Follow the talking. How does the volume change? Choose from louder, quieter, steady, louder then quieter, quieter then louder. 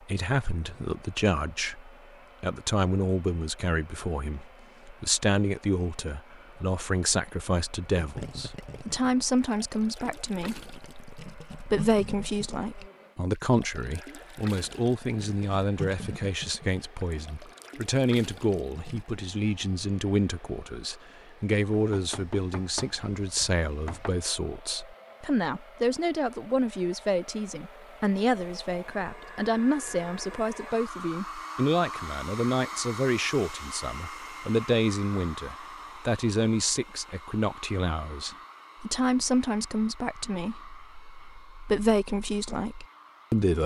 steady.